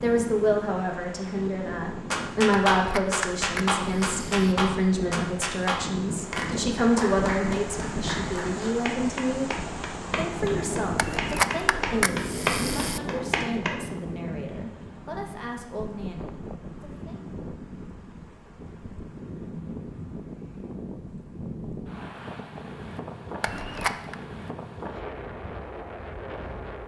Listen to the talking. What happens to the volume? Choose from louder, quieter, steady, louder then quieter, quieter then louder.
quieter.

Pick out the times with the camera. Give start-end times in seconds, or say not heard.
2.8-4.5, 10.9-13.0, 23.4-24.1.